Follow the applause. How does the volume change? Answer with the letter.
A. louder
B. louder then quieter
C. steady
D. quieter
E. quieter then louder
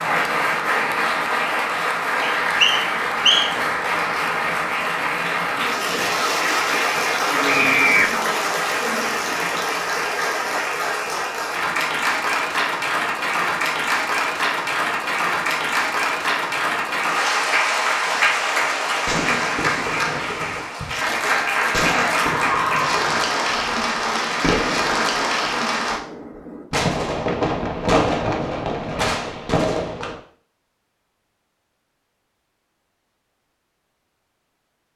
C.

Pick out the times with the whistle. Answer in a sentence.
The whistle can be heard from 2.2 to 3.5 s.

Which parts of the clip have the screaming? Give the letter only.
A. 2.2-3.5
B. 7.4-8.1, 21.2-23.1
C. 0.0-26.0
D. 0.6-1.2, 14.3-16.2
B.